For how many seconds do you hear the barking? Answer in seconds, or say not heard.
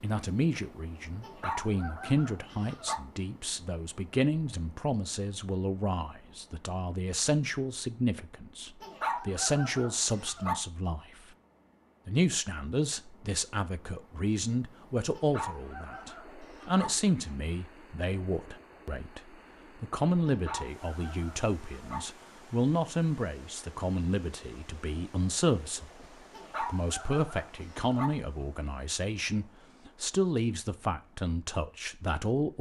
9 s.